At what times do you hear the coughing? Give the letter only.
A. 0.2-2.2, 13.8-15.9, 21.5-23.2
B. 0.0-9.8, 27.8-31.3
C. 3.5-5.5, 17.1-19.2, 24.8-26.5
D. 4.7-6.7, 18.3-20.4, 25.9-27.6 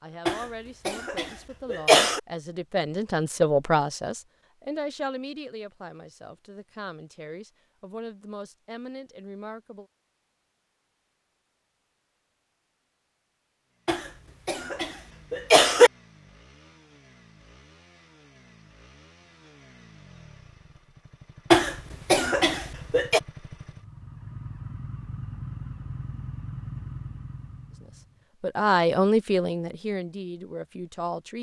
A.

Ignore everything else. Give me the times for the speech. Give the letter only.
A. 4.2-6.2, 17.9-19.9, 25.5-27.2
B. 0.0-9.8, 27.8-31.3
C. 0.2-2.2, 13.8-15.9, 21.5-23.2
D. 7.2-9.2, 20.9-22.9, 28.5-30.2
B.